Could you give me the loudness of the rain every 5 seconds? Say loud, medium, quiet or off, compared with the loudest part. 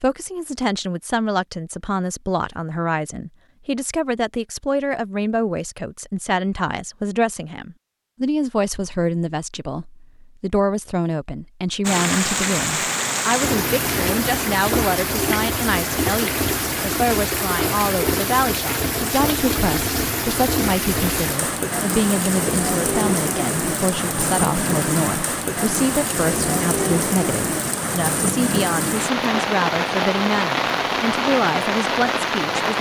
off, off, loud, loud, loud, loud, loud.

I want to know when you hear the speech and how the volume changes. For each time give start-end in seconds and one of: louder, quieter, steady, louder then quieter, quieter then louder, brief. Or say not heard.
0.0-32.7 steady.